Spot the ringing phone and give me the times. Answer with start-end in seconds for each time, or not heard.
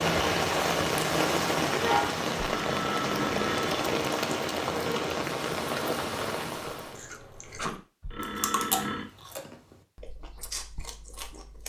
2.5-3.9, 8.0-9.1.